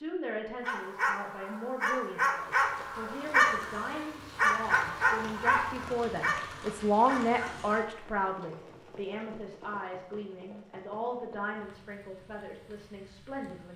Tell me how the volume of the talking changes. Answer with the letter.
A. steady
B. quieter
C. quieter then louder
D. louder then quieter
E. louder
D.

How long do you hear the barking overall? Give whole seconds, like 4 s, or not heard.
7 s.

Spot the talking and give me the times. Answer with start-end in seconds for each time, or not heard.
0.0-13.7.